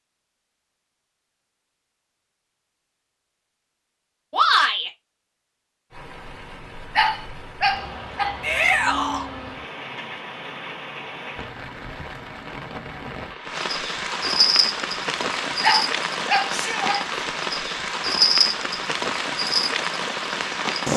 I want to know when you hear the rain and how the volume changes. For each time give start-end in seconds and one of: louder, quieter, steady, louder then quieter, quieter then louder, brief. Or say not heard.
5.9-20.9 louder.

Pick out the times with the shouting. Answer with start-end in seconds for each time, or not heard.
4.3-4.9, 8.4-9.2, 16.4-16.9.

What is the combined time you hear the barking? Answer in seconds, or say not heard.
3 s.